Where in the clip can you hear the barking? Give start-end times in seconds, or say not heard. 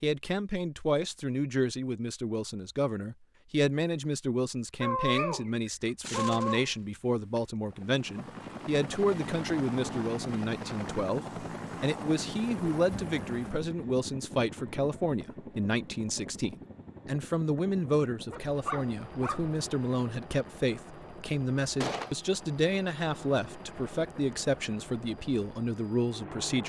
4.8-6.7, 18.3-19.6.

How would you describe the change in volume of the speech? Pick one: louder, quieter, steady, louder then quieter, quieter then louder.
steady.